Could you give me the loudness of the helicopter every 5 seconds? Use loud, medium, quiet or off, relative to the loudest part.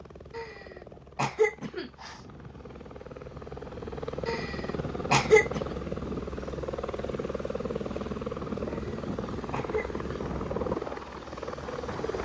medium, loud, loud.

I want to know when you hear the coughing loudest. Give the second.
5 s.